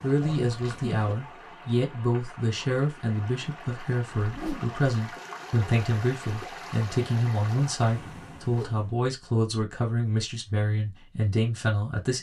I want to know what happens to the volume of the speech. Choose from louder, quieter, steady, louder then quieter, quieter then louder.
steady.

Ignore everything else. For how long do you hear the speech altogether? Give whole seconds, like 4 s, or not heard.
12 s.